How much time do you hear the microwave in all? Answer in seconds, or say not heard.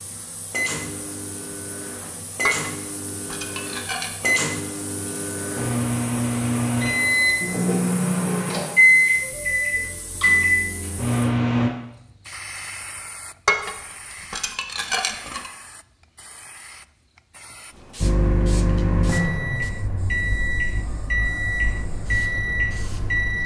17 s.